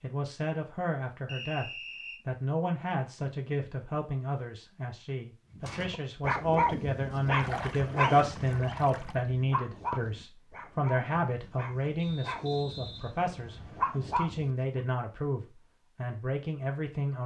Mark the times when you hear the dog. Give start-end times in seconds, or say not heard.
5.5-14.8.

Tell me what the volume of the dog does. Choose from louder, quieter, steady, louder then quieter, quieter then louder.
quieter then louder.